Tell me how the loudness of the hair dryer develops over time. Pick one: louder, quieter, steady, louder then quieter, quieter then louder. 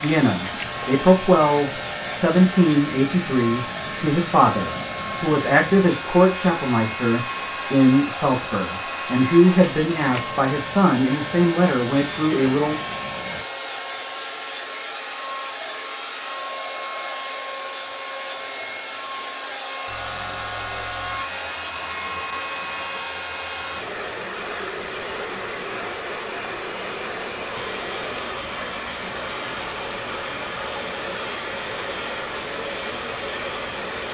steady.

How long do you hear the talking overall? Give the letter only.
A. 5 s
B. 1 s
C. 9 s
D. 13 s
D.